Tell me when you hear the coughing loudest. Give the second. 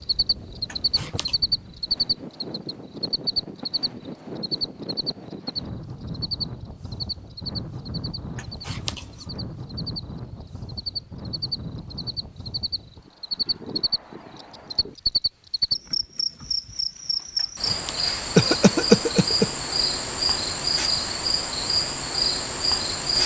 19 s.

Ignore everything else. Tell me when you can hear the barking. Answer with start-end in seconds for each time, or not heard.
not heard.